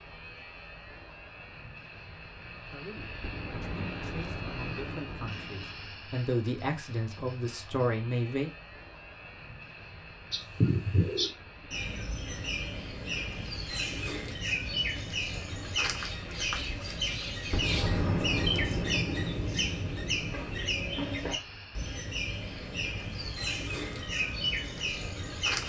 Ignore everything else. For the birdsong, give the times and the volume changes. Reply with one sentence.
You can hear the birdsong from 10.3 to 25.6 s, at a steady volume.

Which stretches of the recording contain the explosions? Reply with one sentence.
The explosions can be heard from 3.2 to 5.8 s and from 17.5 to 20.3 s.